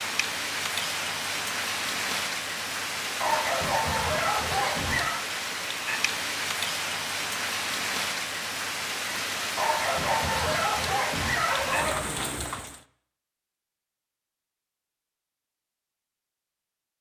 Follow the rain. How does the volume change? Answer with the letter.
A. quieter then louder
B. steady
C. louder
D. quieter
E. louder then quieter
B.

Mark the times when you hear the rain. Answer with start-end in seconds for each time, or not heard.
0.0-12.8.